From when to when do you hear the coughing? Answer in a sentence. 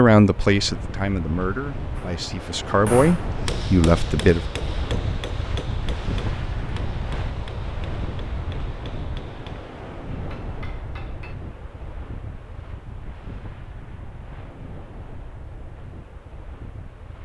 You can't hear the coughing here.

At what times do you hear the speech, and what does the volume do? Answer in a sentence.
You can hear the speech from 0.0 to 4.5 s, getting quieter then louder.